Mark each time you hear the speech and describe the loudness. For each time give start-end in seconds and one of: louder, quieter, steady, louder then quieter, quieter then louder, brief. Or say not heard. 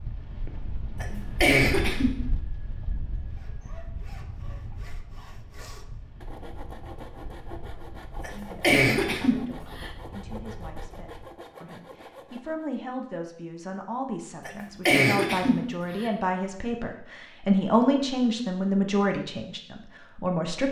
7.7-20.6 louder.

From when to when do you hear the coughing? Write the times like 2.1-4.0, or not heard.
1.0-2.1, 8.2-9.9, 14.4-16.1.